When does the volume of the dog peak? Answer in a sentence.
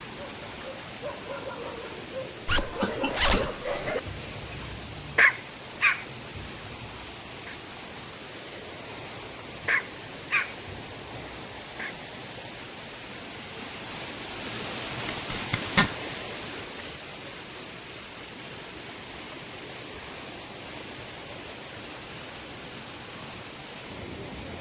The volume of the dog peaks at 5 seconds.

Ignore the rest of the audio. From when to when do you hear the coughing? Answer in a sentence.
The coughing can be heard from 2.7 to 3.6 s.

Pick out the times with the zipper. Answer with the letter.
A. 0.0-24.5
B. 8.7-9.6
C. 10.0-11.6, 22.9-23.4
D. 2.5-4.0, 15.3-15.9
D.